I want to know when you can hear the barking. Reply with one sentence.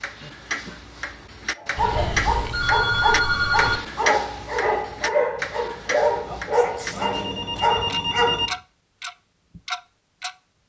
You can hear the barking from 1.6 to 8.6 s.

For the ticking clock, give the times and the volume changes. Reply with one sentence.
You can hear the ticking clock from 0.0 to 7.0 s, getting louder then quieter; and briefly from 7.8 to 10.6 s.